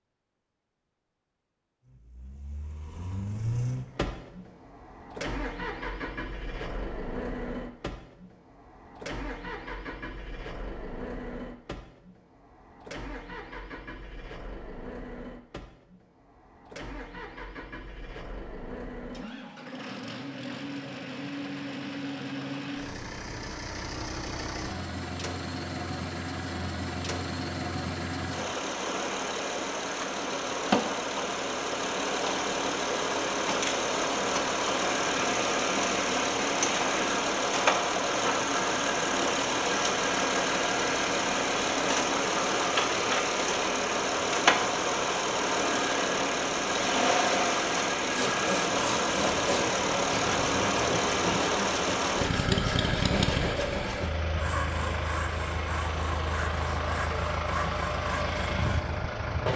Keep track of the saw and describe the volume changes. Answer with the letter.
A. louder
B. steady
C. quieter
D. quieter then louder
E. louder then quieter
B.